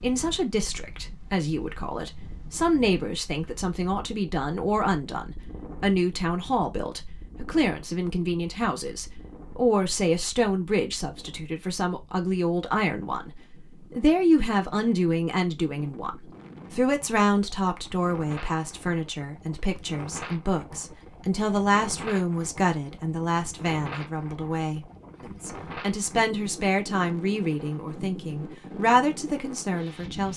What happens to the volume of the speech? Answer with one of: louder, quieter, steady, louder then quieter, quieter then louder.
steady.